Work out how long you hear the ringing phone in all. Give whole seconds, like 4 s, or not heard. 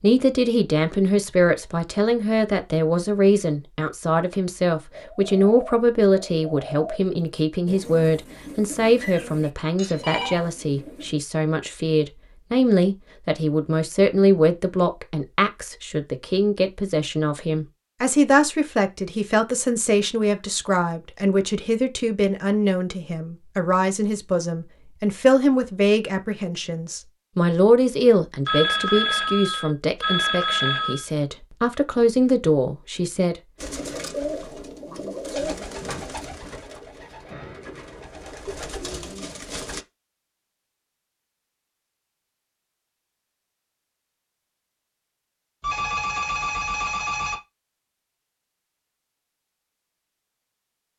5 s.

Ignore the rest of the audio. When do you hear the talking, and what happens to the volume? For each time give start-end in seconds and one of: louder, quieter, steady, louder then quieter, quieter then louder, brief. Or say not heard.
0.0-33.4 steady.